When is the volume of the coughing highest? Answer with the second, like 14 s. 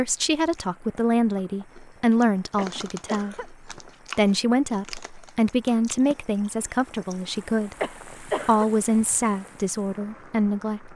8 s.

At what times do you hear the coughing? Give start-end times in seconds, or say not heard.
2.5-3.5, 7.8-8.7.